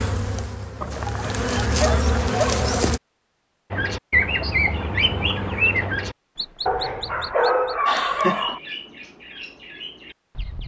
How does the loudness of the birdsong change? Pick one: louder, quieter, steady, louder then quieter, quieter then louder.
quieter.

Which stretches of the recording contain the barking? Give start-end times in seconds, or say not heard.
0.8-2.8, 6.7-8.6.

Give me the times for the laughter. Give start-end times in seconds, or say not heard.
7.5-8.6.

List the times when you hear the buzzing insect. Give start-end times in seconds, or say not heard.
0.0-3.0.